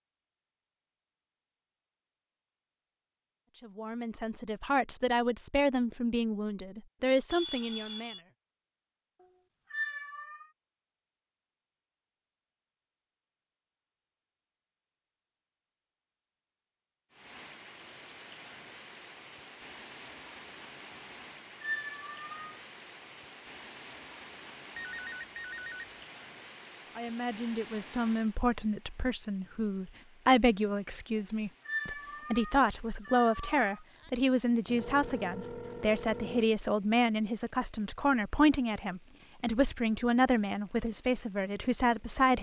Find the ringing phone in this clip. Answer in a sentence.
You can hear the ringing phone from 7.3 to 8.2 s, from 24.8 to 25.9 s and from 34.6 to 36.5 s.